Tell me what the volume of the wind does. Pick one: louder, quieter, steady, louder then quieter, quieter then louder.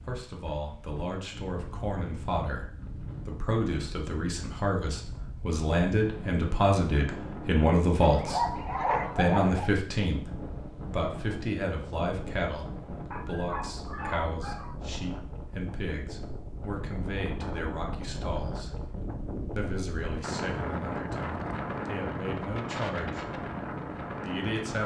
louder.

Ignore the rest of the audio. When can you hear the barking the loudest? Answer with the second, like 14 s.
9 s.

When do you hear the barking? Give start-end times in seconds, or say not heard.
8.0-9.7, 13.1-14.8.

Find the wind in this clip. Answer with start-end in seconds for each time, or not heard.
0.0-24.8.